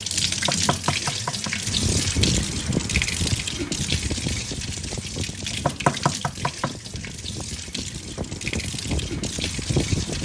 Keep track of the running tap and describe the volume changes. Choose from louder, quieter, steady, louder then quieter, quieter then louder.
quieter.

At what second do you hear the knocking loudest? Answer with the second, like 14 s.
6 s.